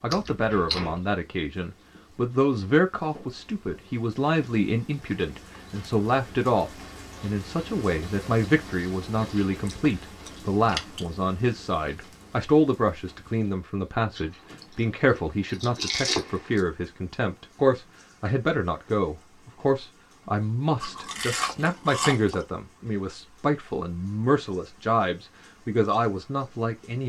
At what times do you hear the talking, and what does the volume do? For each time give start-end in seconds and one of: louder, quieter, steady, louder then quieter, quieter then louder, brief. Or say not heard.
0.0-27.0 steady.